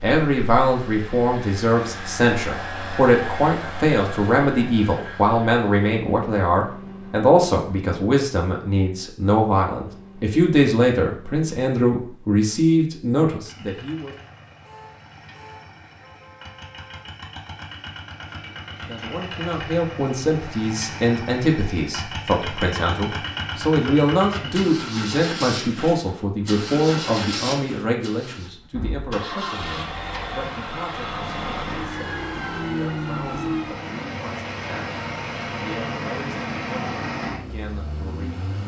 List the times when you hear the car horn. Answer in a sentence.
You can hear the car horn from 14.6 to 17.1 s.